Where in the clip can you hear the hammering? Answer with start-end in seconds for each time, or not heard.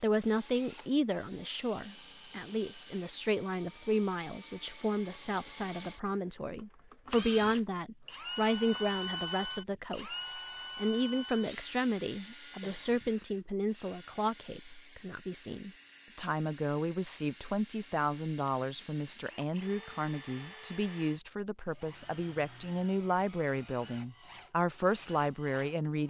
not heard.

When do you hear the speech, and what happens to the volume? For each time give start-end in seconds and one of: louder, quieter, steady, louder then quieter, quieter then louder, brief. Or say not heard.
0.0-26.0 steady.